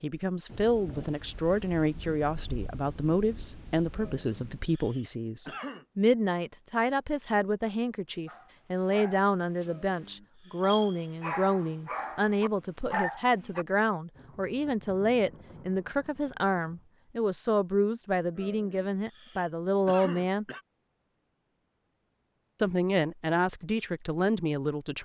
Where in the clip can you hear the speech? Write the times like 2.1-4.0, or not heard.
0.0-20.4, 22.6-25.0.